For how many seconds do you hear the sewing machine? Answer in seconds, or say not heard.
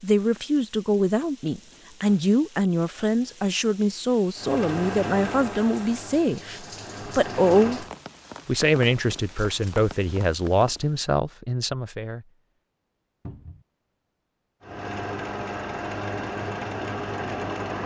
7 s.